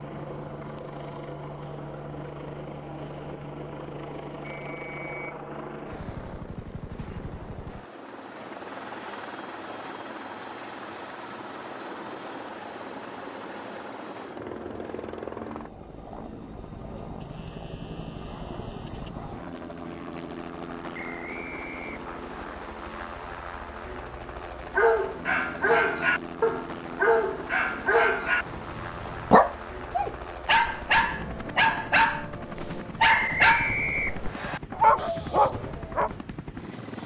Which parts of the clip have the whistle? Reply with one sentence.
You can hear the whistle from 4.4 to 5.3 s, from 20.9 to 22.4 s and from 33.0 to 34.6 s.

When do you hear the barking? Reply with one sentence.
You can hear the barking from 24.8 to 36.1 s.